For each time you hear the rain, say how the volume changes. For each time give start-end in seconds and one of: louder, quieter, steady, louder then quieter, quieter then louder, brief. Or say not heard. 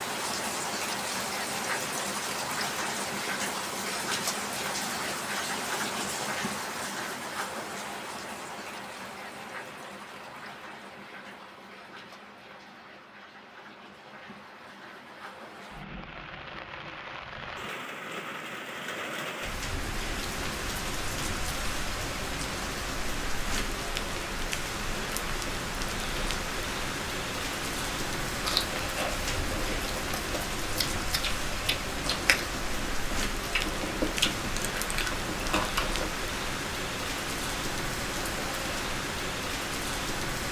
0.0-40.4 quieter then louder.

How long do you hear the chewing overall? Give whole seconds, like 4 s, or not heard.
8 s.